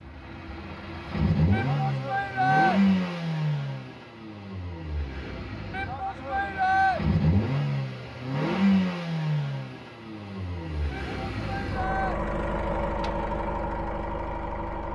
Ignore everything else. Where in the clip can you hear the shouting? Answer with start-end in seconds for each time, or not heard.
1.5-2.8, 5.7-7.0, 10.9-12.2.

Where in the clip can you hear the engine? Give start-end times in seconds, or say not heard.
0.0-14.9.